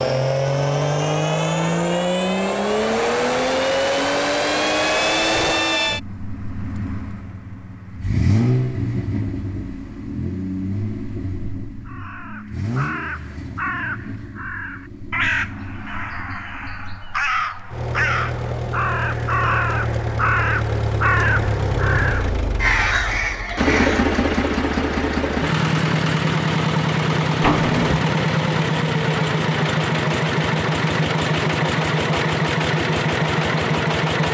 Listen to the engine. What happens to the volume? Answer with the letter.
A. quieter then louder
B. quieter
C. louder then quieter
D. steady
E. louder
A.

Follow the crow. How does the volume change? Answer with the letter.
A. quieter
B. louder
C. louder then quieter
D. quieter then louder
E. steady
B.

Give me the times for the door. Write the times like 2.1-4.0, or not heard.
27.4-28.0.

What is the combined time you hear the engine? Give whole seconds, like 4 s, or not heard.
34 s.